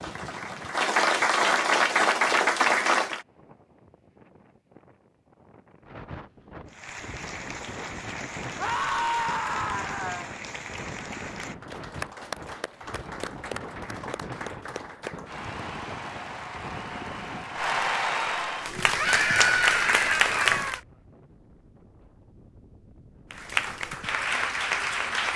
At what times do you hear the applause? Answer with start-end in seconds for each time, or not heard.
0.0-3.2, 6.7-20.8, 23.3-25.3.